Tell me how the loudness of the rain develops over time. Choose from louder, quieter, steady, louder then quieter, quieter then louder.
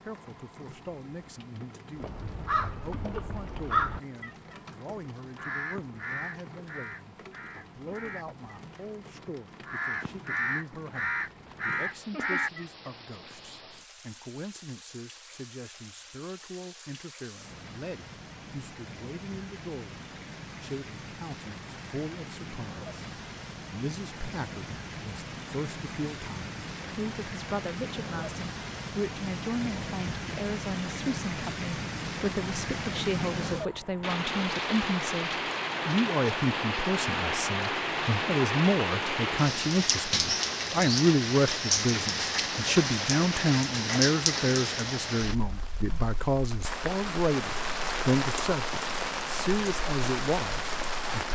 louder.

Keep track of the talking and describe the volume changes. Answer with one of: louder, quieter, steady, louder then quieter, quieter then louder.
louder.